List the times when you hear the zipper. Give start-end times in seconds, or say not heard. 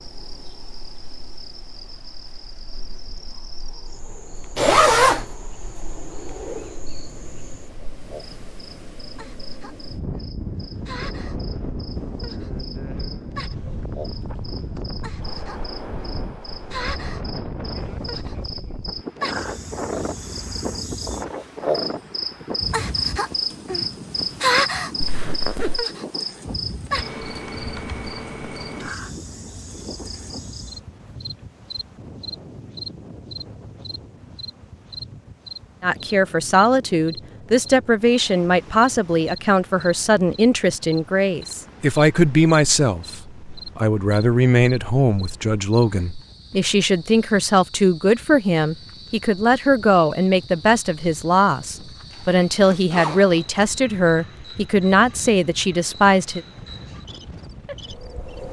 4.5-5.2, 25.0-25.9, 52.1-53.6.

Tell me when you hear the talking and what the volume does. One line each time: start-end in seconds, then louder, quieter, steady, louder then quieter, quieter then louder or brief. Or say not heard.
35.8-56.4 steady.